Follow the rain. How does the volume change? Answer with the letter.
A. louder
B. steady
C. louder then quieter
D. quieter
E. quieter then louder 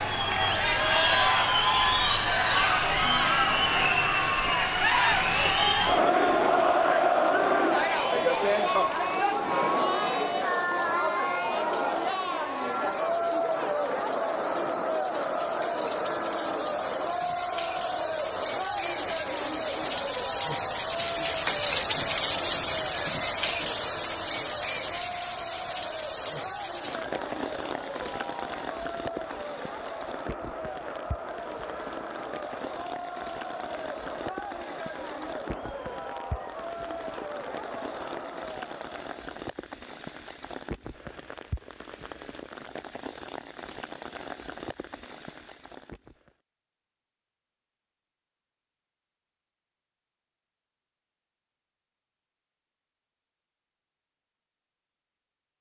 C.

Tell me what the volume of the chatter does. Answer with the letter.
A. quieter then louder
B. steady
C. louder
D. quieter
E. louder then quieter
D.